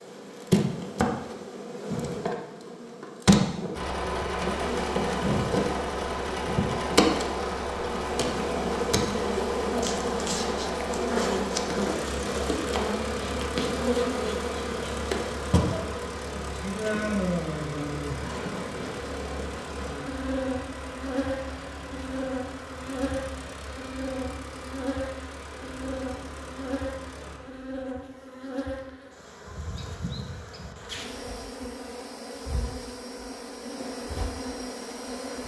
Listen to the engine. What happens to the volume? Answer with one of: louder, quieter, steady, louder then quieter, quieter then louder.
quieter.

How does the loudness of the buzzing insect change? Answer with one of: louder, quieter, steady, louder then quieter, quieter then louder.
quieter.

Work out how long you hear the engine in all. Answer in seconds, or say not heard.
24 s.